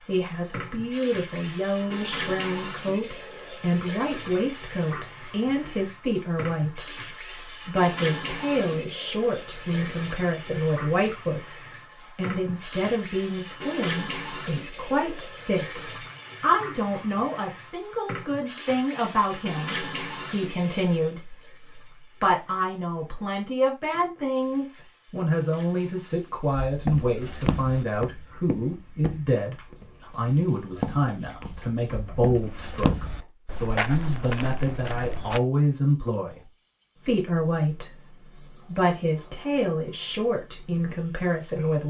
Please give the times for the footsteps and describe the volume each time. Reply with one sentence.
You can hear the footsteps from 26.6 to 35.4 s, getting quieter then louder.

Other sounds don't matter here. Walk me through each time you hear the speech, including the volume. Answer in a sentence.
The speech can be heard from 0.1 to 41.8 s, at a steady volume.